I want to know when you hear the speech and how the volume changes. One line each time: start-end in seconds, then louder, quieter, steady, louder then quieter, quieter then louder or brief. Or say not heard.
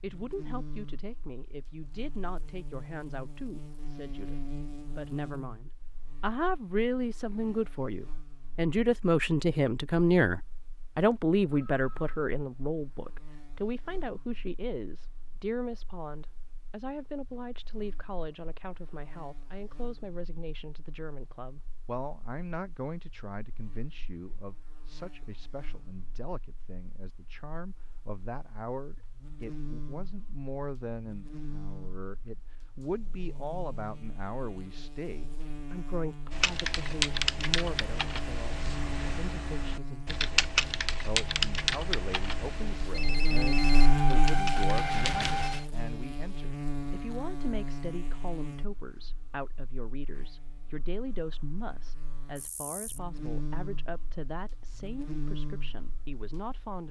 0.0-56.8 quieter.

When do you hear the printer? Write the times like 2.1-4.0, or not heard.
not heard.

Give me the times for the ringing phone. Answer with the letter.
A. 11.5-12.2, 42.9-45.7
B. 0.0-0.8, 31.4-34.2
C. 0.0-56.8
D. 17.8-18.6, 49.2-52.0
A.